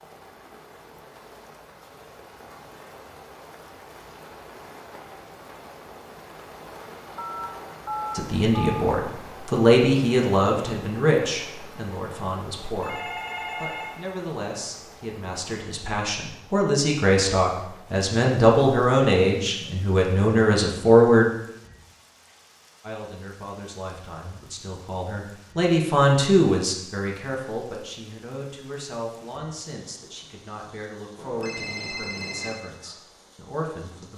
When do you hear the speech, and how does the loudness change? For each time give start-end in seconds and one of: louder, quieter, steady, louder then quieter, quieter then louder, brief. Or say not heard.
8.2-21.3 quieter then louder
22.8-34.1 louder then quieter.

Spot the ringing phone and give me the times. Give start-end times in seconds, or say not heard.
7.2-8.8, 12.8-14.1, 31.1-32.6.